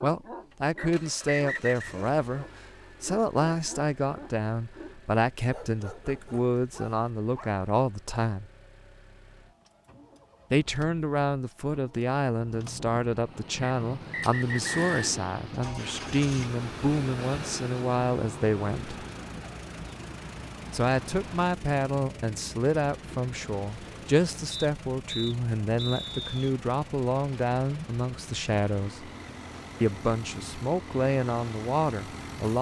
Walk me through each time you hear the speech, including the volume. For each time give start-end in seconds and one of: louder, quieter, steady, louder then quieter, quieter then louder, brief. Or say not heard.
0.0-8.4 steady
10.5-19.0 steady
20.7-29.1 steady
29.8-32.5 brief.